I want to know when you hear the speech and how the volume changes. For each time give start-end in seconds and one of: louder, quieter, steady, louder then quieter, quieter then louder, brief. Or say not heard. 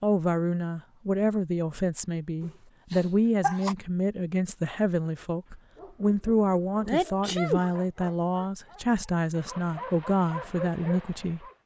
0.0-11.4 steady.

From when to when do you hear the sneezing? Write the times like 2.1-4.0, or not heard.
2.4-3.8, 6.8-7.7.